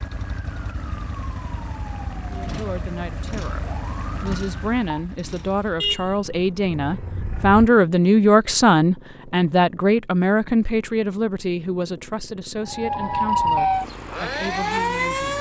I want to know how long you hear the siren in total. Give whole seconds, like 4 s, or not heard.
8 s.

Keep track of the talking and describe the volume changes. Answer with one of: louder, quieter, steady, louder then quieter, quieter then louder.
louder then quieter.